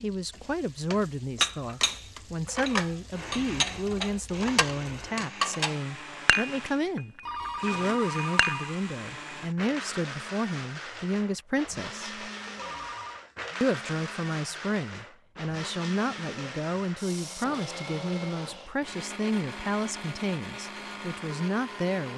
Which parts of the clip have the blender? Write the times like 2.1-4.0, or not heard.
3.1-22.1.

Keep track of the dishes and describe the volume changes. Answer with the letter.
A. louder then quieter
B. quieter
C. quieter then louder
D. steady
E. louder
B.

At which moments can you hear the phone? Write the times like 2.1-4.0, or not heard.
7.2-8.8, 12.6-13.2.